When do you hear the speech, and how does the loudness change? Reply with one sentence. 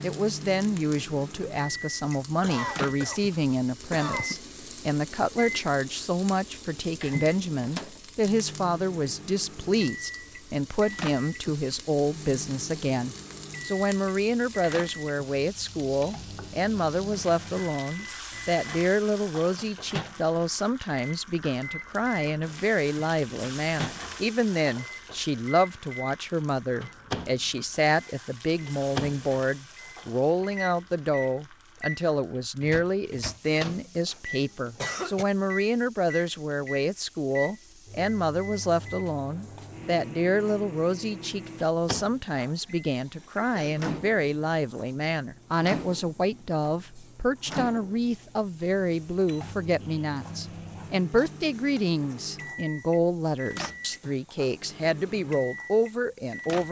The speech can be heard from 0.0 to 56.6 s, at a steady volume.